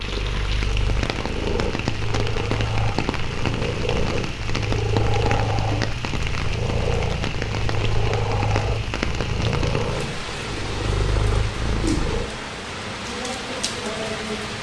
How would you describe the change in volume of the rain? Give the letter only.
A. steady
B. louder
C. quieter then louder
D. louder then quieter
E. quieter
A.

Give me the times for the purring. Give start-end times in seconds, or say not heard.
0.0-12.3.